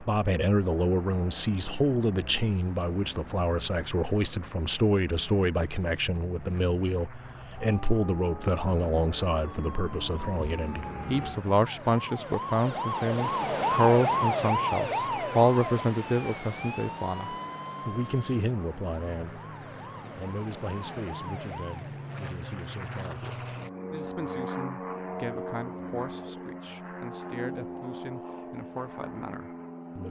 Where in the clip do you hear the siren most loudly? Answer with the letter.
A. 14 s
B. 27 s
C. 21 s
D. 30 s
A.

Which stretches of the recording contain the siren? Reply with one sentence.
You can hear the siren from 7.3 to 22.1 s.